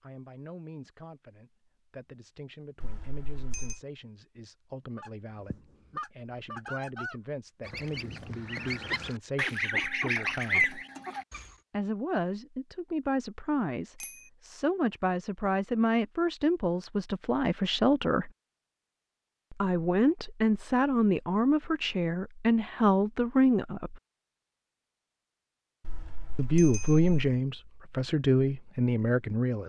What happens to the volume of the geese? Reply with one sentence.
The volume of the geese goes up.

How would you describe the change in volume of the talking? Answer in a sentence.
The volume of the talking goes up.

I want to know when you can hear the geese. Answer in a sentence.
The geese can be heard from 5.0 to 11.5 s.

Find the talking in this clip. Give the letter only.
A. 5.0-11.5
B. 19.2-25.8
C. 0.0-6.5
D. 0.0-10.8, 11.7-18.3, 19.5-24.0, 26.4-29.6
D.